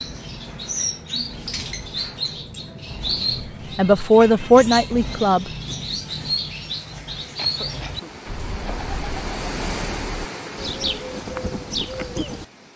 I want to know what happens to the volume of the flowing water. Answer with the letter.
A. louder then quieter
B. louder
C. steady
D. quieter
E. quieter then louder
A.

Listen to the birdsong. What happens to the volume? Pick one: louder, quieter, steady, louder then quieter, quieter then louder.
steady.